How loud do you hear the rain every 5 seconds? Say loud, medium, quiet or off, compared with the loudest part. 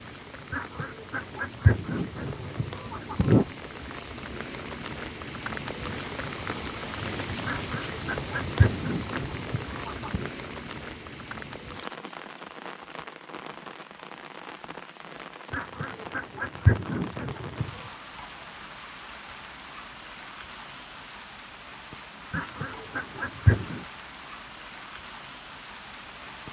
medium, loud, medium, medium, medium, medium.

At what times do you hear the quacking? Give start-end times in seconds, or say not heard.
0.5-3.5, 7.5-10.3, 15.5-17.9, 22.3-23.9.